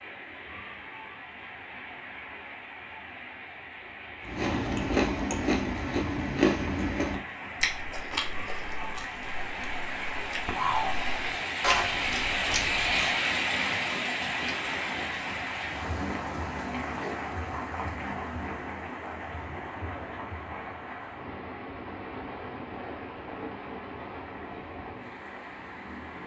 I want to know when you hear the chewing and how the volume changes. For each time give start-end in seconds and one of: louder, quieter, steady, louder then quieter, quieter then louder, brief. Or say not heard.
4.2-13.1 quieter then louder.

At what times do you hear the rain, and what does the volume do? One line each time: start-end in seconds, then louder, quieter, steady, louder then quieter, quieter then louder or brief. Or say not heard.
0.0-26.2 louder then quieter.